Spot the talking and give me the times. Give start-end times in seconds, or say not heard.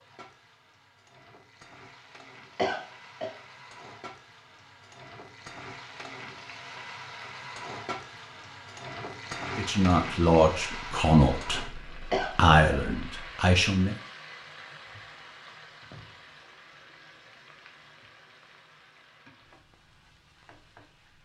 9.6-13.9.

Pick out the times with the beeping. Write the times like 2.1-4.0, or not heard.
not heard.